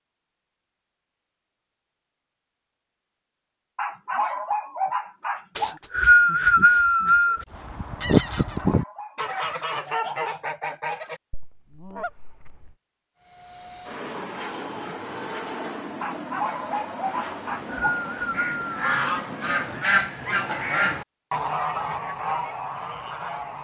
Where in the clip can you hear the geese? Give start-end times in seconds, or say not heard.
7.5-12.8, 17.8-23.5.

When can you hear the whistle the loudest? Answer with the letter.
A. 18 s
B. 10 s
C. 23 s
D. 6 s
D.